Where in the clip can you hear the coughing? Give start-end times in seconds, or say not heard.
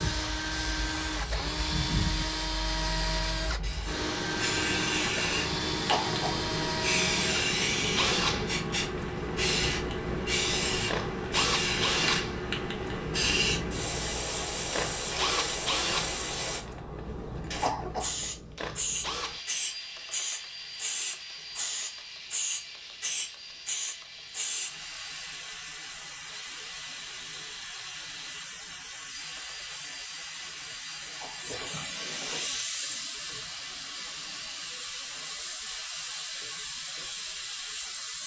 5.8-6.4, 17.6-18.1, 31.2-31.6.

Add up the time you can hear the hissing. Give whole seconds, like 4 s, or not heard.
38 s.